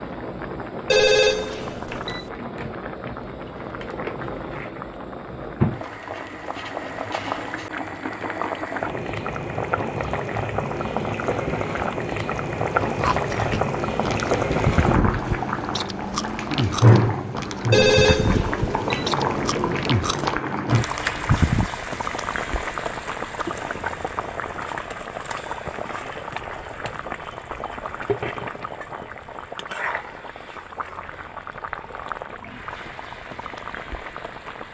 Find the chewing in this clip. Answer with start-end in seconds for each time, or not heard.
12.8-21.7.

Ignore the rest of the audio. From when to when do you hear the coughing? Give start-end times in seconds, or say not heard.
not heard.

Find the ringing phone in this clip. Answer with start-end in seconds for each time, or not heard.
0.9-2.2, 17.7-19.1.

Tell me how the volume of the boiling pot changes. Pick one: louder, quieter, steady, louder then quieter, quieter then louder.
louder then quieter.